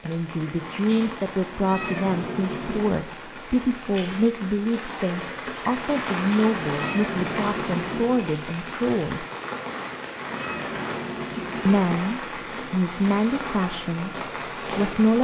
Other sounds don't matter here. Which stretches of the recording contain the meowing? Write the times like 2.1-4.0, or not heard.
1.5-3.0, 6.6-8.3, 10.2-11.8.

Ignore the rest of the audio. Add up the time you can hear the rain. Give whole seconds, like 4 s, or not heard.
15 s.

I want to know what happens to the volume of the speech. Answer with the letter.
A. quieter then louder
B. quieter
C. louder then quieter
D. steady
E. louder
D.